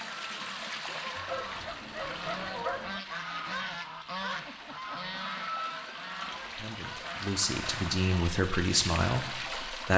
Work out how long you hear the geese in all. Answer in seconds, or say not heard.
8 s.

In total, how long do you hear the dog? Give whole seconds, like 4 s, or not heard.
2 s.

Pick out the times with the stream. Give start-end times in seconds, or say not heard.
0.0-9.9.